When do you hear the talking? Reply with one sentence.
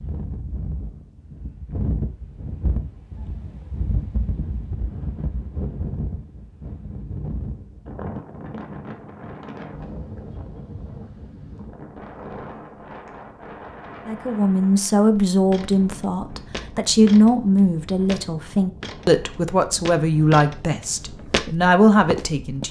You can hear the talking from 14.1 to 22.6 s.